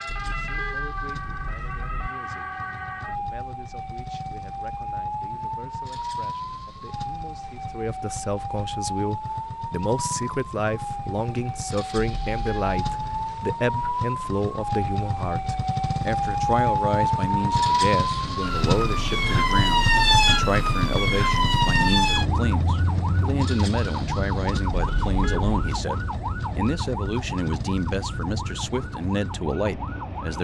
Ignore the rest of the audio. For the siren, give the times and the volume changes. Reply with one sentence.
The siren can be heard from 0.0 to 30.4 s, getting louder then quieter.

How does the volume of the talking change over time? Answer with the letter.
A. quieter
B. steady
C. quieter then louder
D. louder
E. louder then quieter
D.